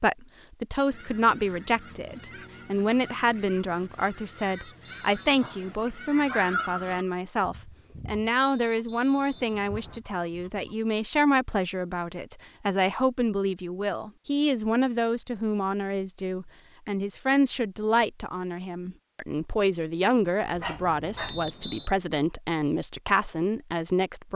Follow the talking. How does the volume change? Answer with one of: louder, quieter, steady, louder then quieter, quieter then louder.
steady.